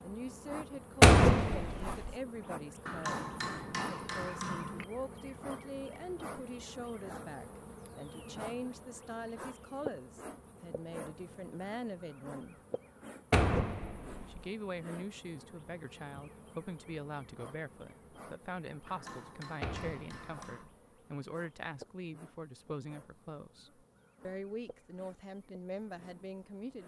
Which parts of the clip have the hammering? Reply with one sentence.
The hammering can be heard from 2.9 to 4.8 s and from 18.9 to 20.7 s.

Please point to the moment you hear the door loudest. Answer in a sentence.
The volume of the door peaks at 1 second.